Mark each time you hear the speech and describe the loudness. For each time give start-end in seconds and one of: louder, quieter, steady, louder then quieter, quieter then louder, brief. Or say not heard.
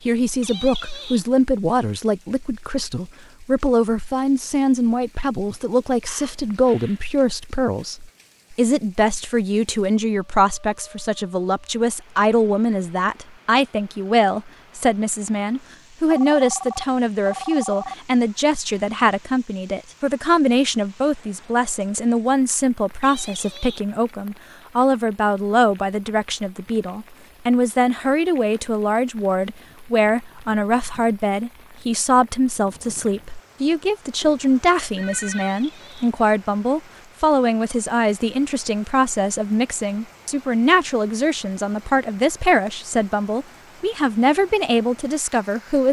0.1-45.8 steady.